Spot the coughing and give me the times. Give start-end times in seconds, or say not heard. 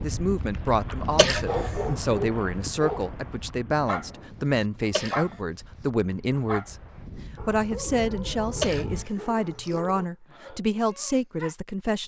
1.1-1.6, 4.9-5.3, 8.6-9.8.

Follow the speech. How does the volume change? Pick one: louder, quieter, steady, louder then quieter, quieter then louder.
steady.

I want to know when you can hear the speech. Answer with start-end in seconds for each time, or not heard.
0.0-12.0.